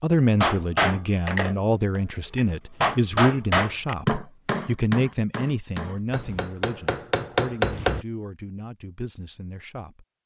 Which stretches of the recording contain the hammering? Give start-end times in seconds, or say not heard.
0.4-8.1.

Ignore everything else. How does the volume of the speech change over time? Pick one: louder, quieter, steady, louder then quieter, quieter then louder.
quieter.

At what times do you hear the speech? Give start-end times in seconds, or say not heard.
0.0-10.1.